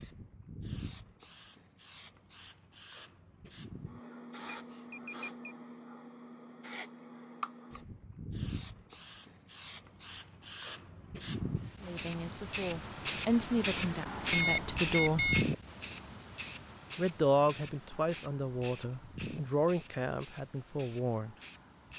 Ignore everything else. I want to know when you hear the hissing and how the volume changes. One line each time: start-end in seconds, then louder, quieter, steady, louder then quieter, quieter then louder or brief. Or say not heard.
0.0-21.9 louder then quieter.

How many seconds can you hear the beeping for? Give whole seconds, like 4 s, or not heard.
2 s.